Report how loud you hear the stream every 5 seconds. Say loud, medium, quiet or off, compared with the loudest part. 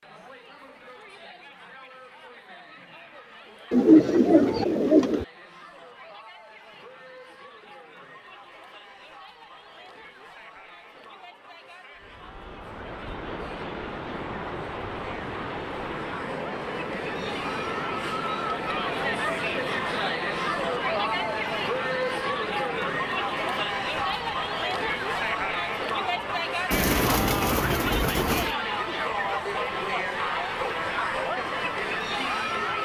off, off, loud, loud, loud, medium, medium.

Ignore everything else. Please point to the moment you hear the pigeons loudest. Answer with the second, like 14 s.
4 s.